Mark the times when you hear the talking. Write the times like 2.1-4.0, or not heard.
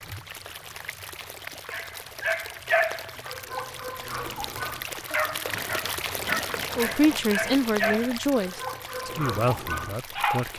6.8-10.5.